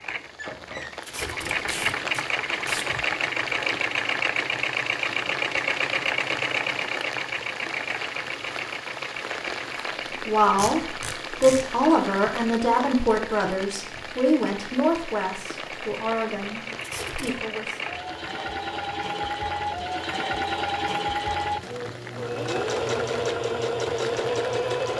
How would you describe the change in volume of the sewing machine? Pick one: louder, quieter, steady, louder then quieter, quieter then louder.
quieter then louder.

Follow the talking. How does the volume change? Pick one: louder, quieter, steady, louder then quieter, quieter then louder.
quieter.